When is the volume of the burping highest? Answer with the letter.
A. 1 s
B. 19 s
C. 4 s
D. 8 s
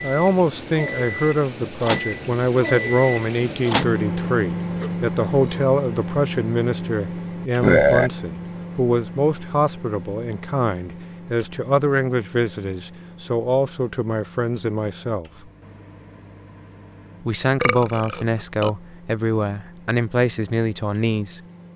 D.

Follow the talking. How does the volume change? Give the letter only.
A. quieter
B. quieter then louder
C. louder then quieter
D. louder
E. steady
E.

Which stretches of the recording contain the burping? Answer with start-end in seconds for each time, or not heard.
4.8-5.7, 7.6-8.1, 17.6-18.7.